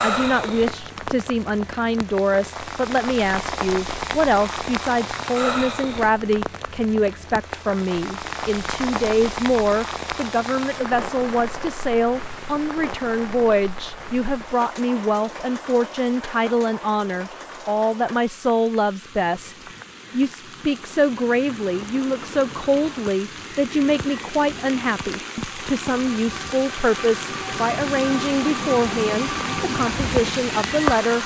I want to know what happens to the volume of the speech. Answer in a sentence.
The loudness of the speech stays about the same.